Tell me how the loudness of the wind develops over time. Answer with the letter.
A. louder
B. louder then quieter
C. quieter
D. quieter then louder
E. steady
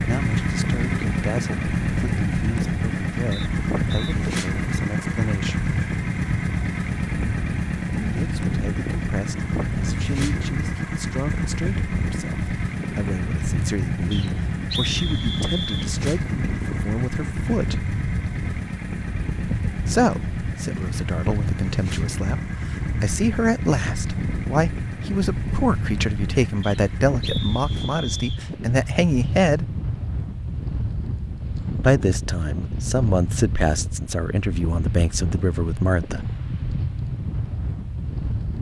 E.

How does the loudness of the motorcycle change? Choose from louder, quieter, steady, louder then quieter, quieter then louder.
quieter.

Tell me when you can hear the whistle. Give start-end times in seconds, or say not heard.
3.3-4.2, 14.1-15.9, 26.6-28.4.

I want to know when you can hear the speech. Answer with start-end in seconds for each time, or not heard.
0.1-5.7, 8.0-17.9, 19.9-29.8, 31.8-36.4.